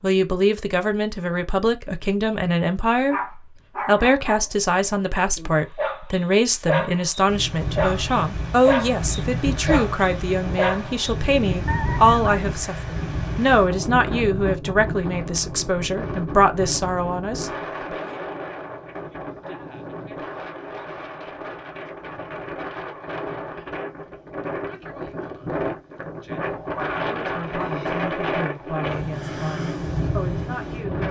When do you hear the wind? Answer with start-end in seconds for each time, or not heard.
7.2-31.0.